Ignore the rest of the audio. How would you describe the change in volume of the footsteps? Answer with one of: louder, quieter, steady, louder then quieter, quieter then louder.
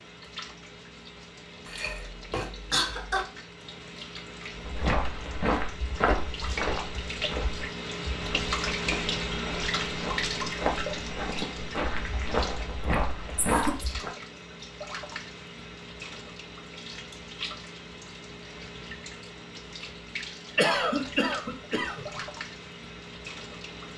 quieter then louder.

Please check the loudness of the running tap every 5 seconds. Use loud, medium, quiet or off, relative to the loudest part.
medium, loud, loud, medium, medium.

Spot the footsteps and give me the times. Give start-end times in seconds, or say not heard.
4.5-14.1.